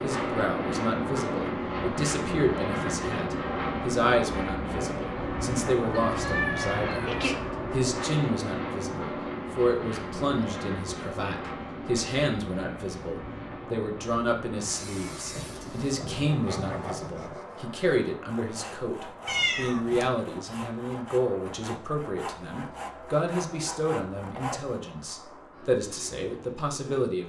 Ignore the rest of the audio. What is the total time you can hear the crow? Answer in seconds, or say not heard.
not heard.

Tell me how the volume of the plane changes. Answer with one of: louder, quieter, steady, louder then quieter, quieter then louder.
quieter.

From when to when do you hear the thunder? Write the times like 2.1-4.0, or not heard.
15.3-17.4.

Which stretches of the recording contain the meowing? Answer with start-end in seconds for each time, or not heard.
5.9-7.4, 19.2-20.1.